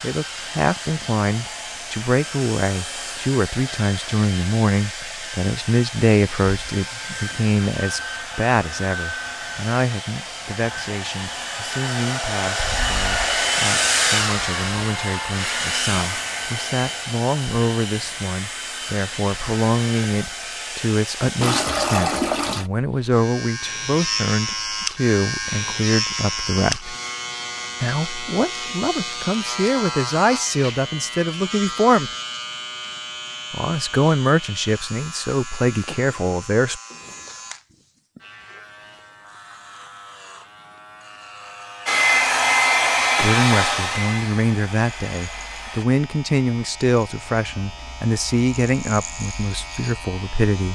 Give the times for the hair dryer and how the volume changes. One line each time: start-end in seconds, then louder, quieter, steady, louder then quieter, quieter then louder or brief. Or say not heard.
0.0-21.6 louder then quieter
41.9-45.9 quieter.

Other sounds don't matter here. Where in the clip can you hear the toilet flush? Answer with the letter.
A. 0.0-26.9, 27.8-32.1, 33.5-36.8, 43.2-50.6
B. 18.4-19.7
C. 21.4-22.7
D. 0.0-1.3
C.